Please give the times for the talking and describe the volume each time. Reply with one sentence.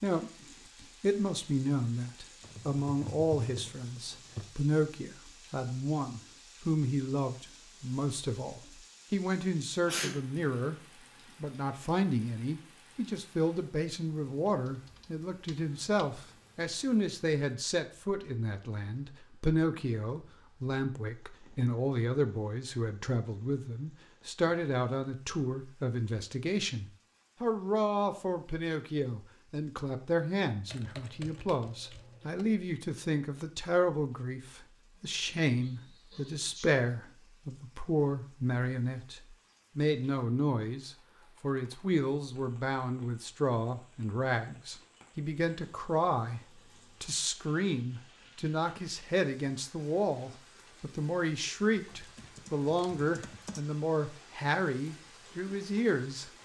You can hear the talking from 0.0 to 10.8 s, at a steady volume; and from 11.4 to 56.3 s, at a steady volume.